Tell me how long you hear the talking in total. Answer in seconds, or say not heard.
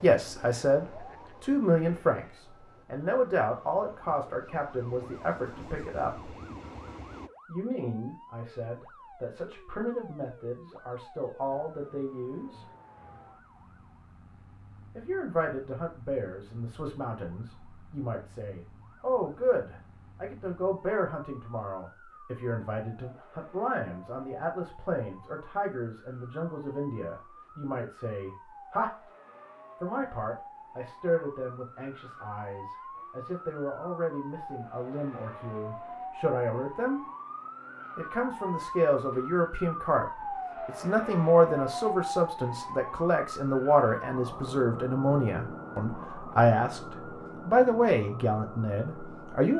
44 s.